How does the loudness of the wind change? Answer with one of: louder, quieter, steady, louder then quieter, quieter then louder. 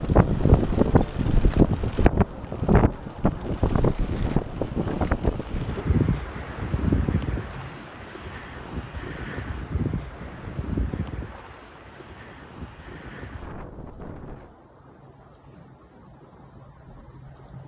quieter.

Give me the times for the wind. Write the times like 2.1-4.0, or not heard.
0.0-14.6.